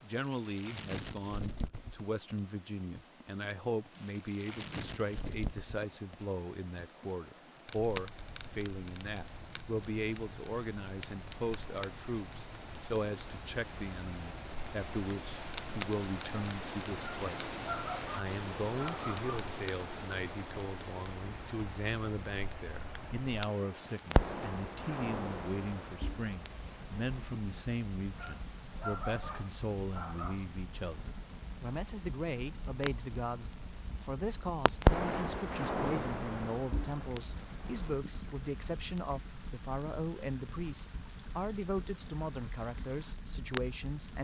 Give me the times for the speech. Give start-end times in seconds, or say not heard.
0.0-44.2.